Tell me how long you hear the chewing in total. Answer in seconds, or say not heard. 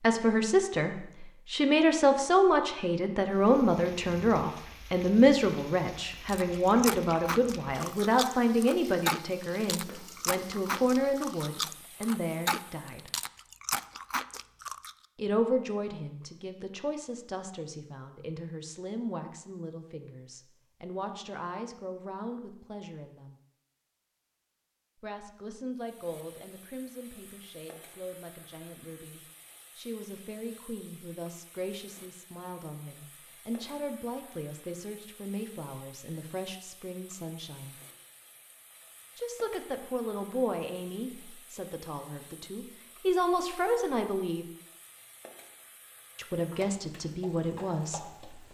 9 s.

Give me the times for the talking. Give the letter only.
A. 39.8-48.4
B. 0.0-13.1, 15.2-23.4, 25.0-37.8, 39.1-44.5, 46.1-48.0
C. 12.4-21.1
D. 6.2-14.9
B.